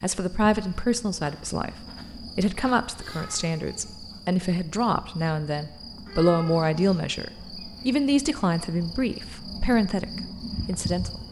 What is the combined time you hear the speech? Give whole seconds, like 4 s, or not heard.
11 s.